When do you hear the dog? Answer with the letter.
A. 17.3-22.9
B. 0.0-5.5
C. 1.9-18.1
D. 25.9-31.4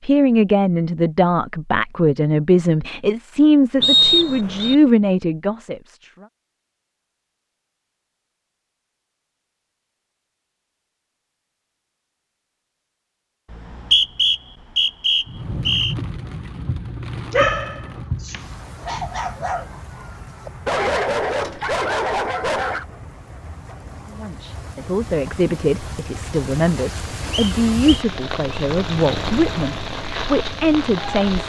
A.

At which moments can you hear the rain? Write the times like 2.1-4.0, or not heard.
15.2-31.4.